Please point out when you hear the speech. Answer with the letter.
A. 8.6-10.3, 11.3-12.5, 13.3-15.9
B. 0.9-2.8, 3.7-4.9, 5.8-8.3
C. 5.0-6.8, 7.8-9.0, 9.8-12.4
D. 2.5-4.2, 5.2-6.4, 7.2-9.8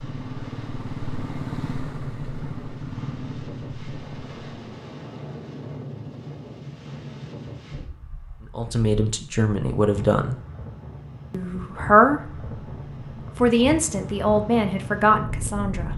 A.